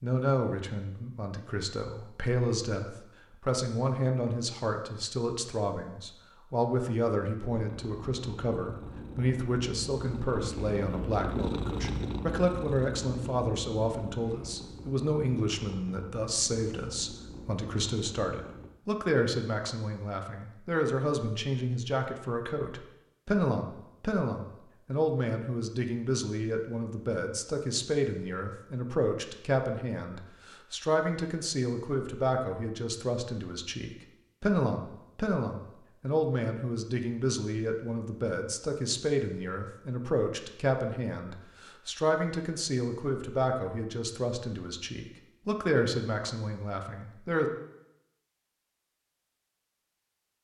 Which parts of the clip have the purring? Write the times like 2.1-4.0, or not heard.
7.4-18.8.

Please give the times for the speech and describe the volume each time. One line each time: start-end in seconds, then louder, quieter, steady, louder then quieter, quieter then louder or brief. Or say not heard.
0.0-47.5 steady.